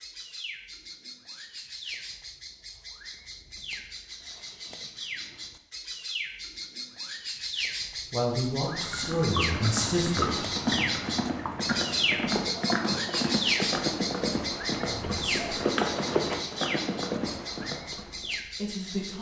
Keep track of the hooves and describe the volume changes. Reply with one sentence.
The volume of the hooves stays about the same.